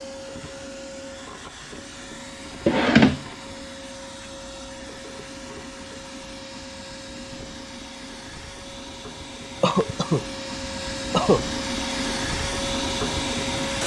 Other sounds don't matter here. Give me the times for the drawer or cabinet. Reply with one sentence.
The drawer or cabinet can be heard from 2.6 to 3.2 s.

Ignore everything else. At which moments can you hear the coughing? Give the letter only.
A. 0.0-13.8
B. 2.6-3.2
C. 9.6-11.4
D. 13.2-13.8
C.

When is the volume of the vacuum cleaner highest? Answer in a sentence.
The loudest moment of the vacuum cleaner is at 13 seconds.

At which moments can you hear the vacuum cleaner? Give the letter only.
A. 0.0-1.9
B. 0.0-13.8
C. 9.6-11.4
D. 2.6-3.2
B.